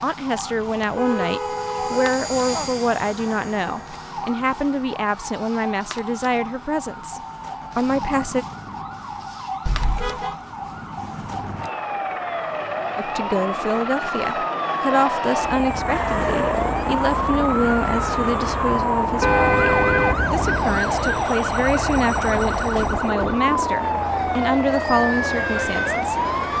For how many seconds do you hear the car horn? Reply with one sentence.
The car horn can be heard for 5 seconds in total.